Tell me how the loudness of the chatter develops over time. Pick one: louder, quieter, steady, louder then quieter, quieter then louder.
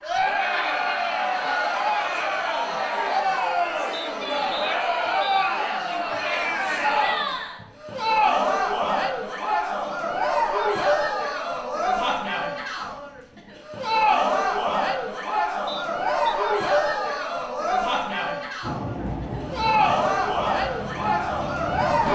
steady.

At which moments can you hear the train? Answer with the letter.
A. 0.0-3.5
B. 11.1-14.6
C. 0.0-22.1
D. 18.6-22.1
D.